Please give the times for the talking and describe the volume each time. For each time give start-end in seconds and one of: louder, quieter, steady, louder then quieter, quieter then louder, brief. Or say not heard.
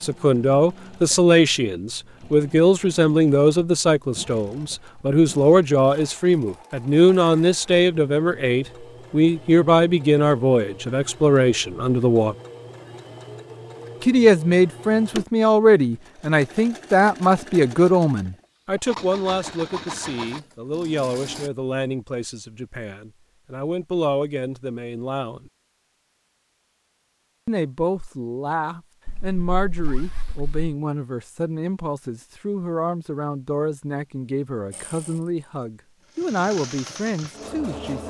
0.0-12.3 steady
14.0-25.5 quieter
27.4-38.0 steady.